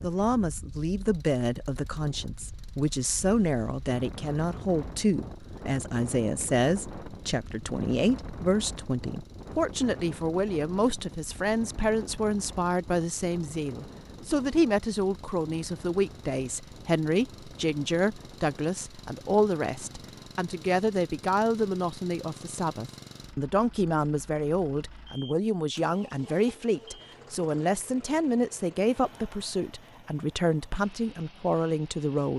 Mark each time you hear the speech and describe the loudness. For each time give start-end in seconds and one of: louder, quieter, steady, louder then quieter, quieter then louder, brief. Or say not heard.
0.0-32.3 steady.